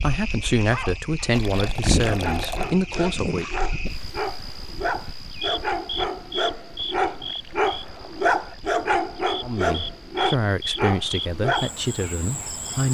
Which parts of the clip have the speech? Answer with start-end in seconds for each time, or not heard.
0.0-3.5, 9.4-12.8.